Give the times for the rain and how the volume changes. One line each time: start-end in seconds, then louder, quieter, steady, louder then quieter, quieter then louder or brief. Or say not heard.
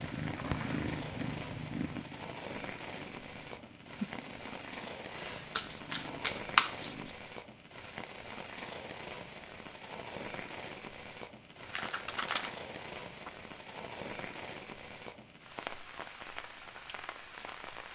0.0-17.9 steady.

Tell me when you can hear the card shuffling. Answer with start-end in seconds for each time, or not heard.
5.2-7.2, 11.7-13.3.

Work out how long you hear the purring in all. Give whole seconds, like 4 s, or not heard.
7 s.